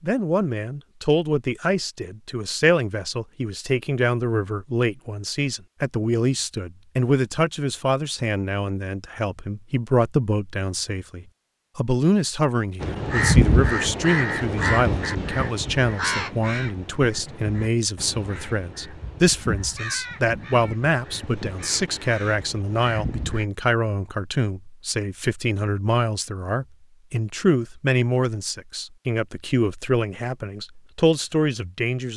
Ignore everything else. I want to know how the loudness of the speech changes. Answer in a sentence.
The loudness of the speech stays about the same.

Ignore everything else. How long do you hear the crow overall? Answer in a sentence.
You can hear the crow for 11 seconds altogether.